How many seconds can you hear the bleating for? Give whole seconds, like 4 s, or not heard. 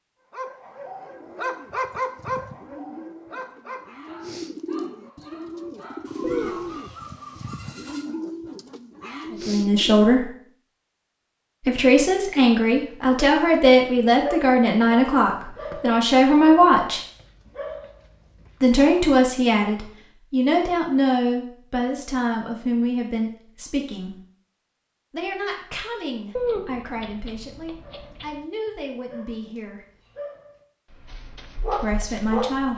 2 s.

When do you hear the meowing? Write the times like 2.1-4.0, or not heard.
6.2-6.8, 26.4-28.4.